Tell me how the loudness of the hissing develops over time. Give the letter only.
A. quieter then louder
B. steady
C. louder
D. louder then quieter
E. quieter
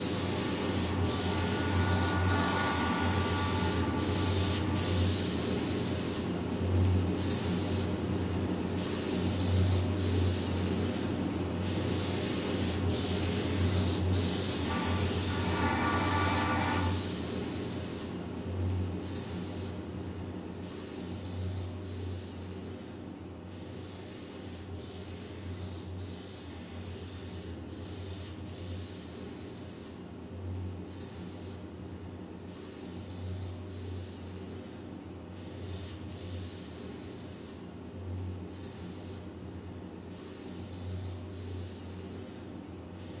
E.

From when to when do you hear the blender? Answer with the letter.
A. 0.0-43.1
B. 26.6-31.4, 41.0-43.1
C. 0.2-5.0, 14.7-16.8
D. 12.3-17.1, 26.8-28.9
C.